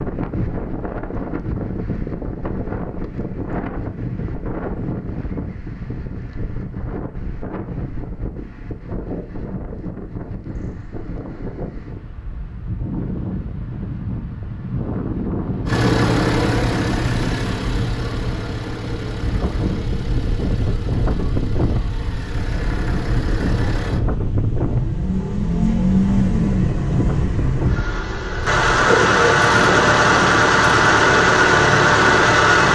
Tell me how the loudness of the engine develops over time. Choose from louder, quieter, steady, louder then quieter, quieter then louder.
quieter then louder.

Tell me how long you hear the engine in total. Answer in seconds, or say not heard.
17 s.